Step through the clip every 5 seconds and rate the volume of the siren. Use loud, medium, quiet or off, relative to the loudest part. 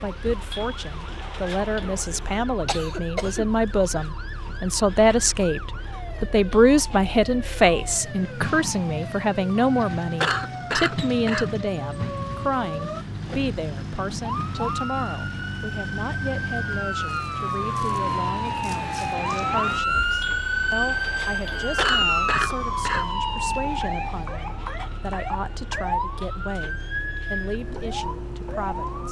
quiet, quiet, medium, loud, loud, medium.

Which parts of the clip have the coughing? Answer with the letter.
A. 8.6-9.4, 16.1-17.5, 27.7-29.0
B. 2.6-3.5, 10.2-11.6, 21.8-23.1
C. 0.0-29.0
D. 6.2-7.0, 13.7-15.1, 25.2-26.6
B.